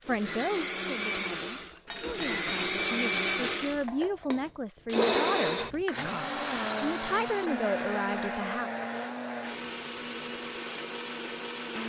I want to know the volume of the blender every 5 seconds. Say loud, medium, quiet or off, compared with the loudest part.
loud, loud, medium.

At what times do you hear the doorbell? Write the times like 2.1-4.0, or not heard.
1.9-2.8.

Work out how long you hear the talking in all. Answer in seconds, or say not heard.
9 s.